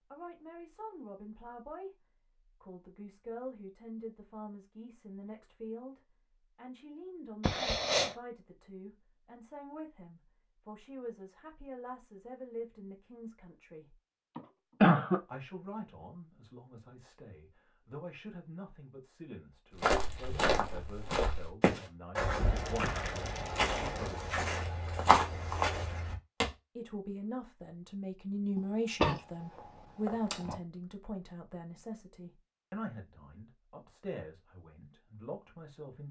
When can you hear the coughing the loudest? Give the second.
15 s.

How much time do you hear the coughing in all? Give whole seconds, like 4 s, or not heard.
3 s.